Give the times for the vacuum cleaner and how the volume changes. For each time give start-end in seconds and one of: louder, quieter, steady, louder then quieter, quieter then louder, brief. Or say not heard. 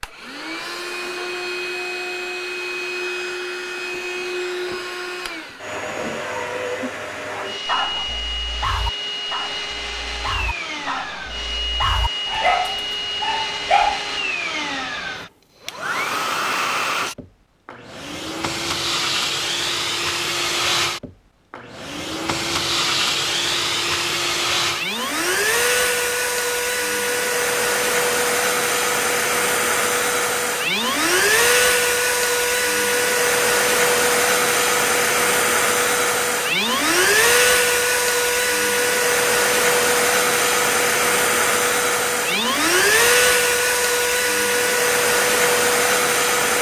0.0-46.5 louder.